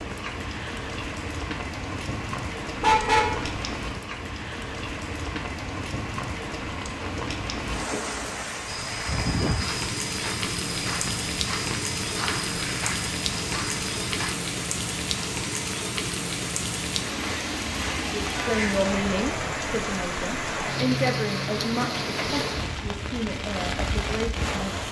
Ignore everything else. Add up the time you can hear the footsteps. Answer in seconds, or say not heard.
6 s.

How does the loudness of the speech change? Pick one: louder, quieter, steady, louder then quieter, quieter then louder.
quieter.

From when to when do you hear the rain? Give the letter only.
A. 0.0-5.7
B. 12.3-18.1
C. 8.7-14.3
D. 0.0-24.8
D.